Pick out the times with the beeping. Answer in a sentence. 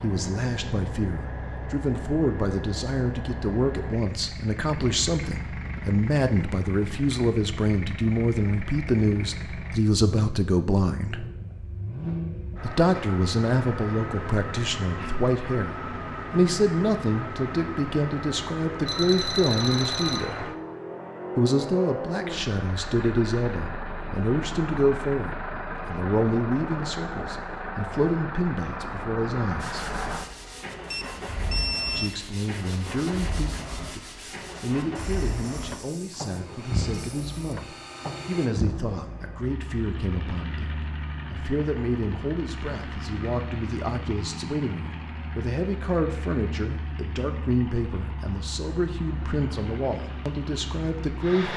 You can hear the beeping from 18.9 to 20.2 s and from 30.9 to 32.2 s.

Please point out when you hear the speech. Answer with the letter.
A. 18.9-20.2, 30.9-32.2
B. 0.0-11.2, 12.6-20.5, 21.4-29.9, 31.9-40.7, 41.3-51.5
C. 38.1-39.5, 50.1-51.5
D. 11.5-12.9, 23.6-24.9
B.